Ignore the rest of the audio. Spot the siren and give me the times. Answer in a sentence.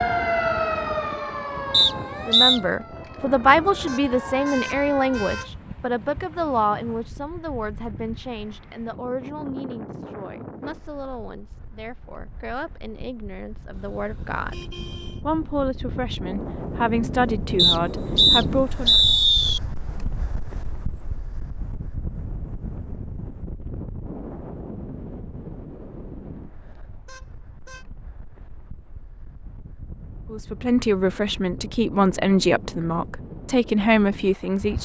You can hear the siren from 0.0 to 5.4 s.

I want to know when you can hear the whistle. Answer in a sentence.
You can hear the whistle from 1.7 to 2.6 s and from 17.6 to 19.6 s.